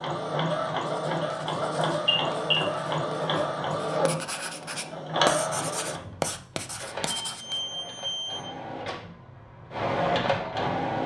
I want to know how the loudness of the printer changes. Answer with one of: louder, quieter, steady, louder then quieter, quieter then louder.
quieter then louder.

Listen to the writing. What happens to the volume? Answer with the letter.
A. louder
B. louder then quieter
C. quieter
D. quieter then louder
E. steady
A.